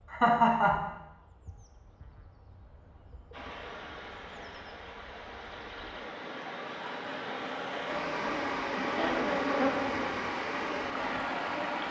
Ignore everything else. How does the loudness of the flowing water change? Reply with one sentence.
The loudness of the flowing water goes up.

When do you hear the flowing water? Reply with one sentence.
The flowing water can be heard from 3.3 to 11.8 s.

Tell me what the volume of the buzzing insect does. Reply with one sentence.
The volume of the buzzing insect goes up.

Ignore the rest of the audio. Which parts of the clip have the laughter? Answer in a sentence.
The laughter can be heard from 0.1 to 0.9 s and from 8.0 to 9.6 s.